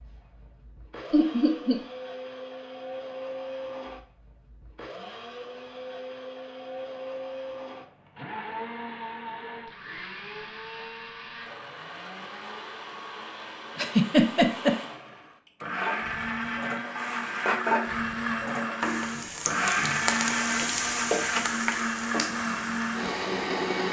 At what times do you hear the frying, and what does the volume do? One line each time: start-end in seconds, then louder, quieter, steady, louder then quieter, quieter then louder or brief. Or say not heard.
15.7-23.8 louder then quieter.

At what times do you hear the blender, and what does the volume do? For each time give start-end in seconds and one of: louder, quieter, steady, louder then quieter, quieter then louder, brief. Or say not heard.
0.0-23.8 louder.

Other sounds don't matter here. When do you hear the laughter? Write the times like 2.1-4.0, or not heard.
1.1-1.8, 13.8-14.8.